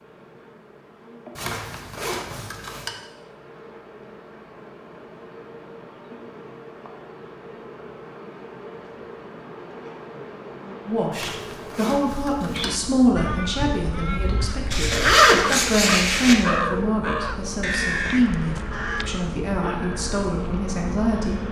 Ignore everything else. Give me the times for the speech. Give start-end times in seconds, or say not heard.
10.8-21.4.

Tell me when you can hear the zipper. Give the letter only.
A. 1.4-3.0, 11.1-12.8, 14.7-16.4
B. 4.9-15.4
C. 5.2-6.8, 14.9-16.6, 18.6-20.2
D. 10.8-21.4
A.